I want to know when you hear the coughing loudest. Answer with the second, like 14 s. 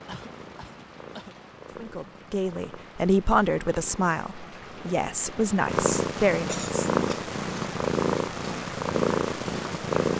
7 s.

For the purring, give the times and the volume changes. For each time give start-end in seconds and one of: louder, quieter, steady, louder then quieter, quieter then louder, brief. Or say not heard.
0.0-10.1 louder.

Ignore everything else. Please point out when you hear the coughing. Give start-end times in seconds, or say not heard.
0.1-1.4, 6.5-7.3.